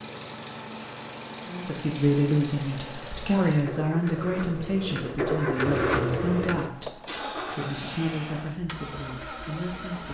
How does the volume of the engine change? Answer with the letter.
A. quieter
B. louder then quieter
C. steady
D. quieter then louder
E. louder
B.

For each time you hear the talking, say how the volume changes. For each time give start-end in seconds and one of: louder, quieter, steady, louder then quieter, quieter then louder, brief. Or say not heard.
1.4-10.0 quieter.